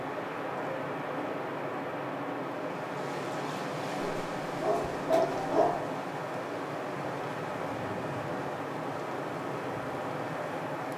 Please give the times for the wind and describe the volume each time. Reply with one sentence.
You can hear the wind from 0.0 to 10.9 s, at a steady volume.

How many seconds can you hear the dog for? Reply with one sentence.
You can hear the dog for 2 seconds altogether.